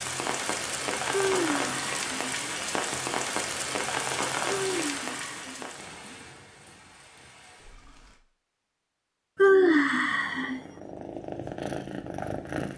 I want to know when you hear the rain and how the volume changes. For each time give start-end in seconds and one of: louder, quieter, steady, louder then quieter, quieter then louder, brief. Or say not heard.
0.0-8.2 quieter.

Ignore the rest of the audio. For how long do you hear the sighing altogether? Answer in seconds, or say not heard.
4 s.